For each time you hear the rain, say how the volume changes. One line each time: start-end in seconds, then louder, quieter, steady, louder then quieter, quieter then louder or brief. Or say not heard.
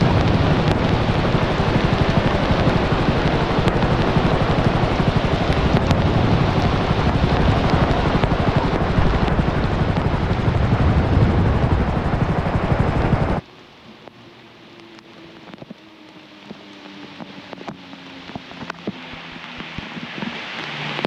0.0-21.0 quieter then louder.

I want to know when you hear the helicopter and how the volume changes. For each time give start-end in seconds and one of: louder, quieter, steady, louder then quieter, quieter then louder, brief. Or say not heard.
0.0-13.4 steady.